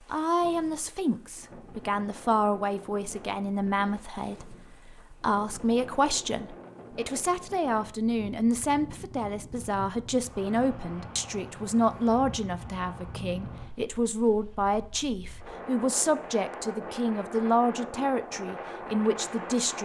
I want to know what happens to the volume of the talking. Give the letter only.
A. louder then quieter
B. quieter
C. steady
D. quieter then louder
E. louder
C.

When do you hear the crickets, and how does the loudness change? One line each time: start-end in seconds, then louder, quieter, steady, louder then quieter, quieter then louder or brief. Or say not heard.
not heard.